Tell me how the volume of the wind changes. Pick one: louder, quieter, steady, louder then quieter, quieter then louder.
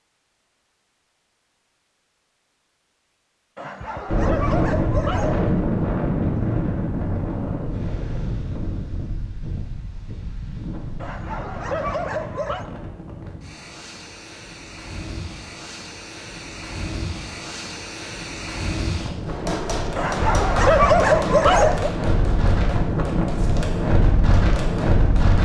quieter then louder.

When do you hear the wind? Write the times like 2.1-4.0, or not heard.
4.0-25.3.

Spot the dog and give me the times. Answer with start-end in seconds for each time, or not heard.
3.5-5.5, 11.0-12.7, 19.9-21.9.